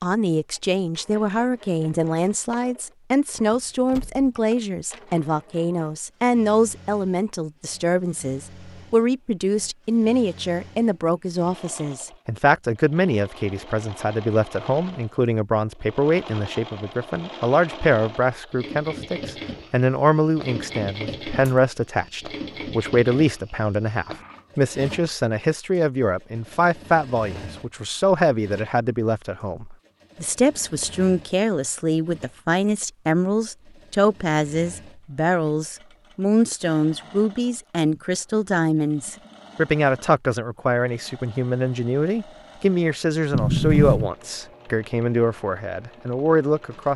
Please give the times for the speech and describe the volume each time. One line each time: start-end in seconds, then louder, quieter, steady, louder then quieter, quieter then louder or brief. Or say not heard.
0.0-46.9 steady.